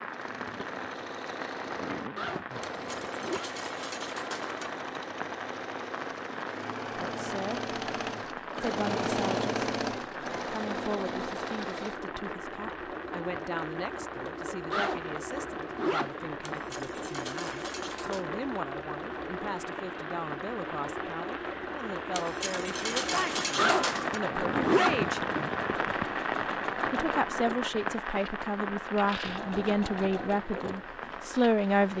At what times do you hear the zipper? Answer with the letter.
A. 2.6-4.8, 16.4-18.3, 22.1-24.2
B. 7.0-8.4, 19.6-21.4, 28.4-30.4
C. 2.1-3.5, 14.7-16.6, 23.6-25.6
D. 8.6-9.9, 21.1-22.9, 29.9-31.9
C.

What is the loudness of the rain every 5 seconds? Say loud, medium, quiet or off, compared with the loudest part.
medium, medium, medium, medium, loud, loud, medium.